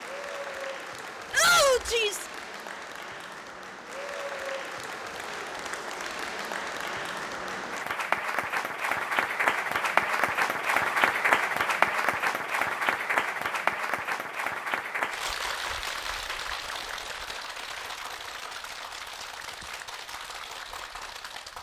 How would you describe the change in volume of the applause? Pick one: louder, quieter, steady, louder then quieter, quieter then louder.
louder then quieter.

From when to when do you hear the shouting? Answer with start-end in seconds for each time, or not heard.
1.3-2.2.